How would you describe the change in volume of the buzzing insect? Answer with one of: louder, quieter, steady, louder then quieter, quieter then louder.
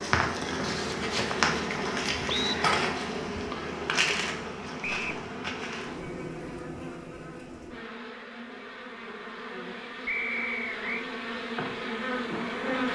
quieter then louder.